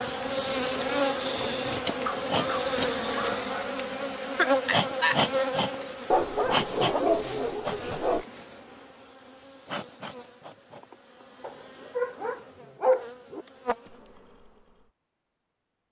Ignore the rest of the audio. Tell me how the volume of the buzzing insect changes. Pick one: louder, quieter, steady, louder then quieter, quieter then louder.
quieter.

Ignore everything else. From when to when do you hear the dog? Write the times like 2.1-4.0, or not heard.
2.0-3.5, 6.1-8.2, 11.4-13.4.